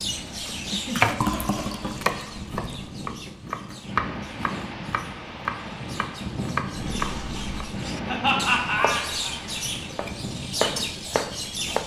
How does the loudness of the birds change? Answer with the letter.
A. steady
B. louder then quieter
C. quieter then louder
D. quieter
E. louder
C.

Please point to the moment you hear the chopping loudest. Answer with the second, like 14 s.
1 s.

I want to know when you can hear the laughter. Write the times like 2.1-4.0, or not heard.
0.7-2.0, 8.1-9.3.